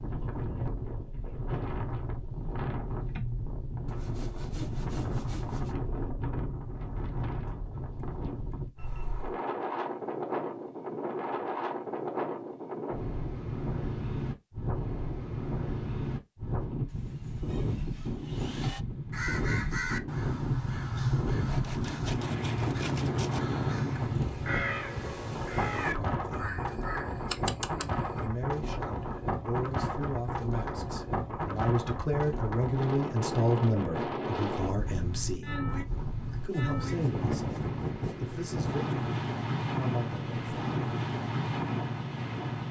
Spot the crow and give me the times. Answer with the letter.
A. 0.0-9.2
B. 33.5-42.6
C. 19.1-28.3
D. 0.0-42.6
C.